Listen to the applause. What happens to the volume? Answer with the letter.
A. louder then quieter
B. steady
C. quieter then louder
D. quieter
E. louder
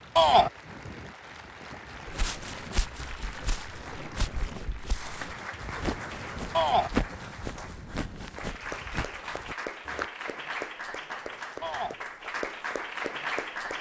E.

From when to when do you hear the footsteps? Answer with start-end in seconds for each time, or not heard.
2.0-10.1.